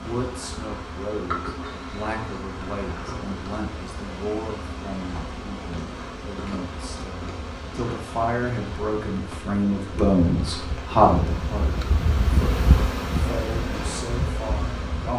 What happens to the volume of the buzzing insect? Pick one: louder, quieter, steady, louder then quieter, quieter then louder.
louder.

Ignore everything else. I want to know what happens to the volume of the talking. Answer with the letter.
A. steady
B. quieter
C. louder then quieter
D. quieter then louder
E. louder
C.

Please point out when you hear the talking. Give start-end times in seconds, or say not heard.
0.0-15.1.